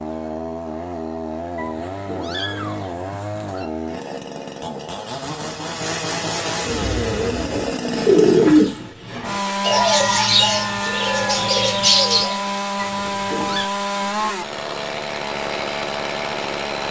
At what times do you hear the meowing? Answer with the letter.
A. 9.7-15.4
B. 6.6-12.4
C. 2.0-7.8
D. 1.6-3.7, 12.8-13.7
D.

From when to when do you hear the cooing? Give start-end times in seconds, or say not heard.
6.6-12.4.